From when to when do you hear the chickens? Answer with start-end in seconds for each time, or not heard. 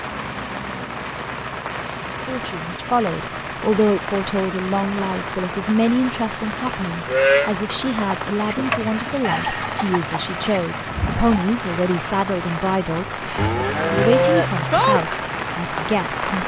8.0-11.4.